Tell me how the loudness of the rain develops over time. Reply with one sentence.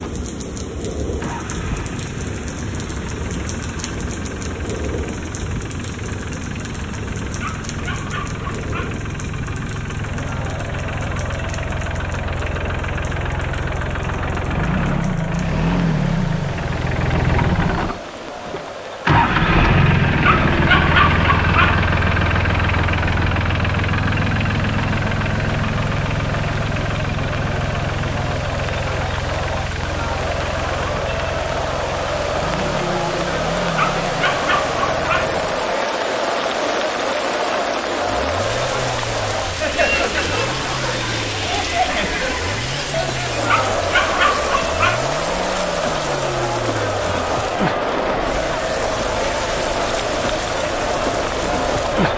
The loudness of the rain goes down, then up.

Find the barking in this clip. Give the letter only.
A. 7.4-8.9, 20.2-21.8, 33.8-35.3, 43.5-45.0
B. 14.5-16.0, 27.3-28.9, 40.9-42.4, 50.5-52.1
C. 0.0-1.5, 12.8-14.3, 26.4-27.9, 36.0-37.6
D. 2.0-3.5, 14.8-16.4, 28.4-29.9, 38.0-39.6
A.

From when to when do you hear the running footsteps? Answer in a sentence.
You can't hear the running footsteps here.